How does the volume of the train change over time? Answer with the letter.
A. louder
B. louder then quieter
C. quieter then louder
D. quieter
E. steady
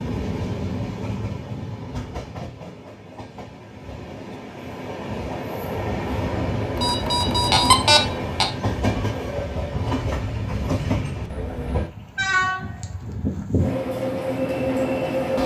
A.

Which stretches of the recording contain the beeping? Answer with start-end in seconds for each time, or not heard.
6.8-8.4.